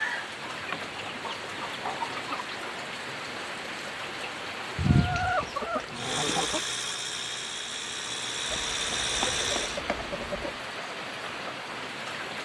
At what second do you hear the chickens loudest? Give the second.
5 s.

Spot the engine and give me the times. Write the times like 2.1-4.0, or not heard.
5.9-9.8.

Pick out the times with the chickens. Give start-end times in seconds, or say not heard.
0.5-2.5, 4.8-6.8, 8.4-10.6.